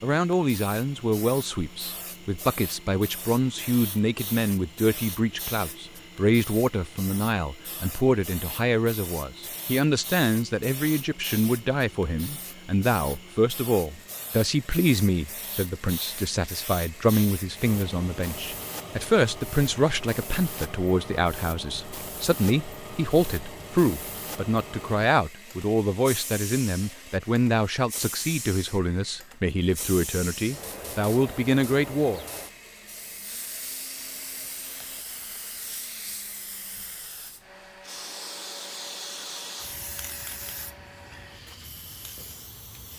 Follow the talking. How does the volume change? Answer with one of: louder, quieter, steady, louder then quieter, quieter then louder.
steady.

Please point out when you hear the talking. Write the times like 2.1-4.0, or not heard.
0.0-32.2.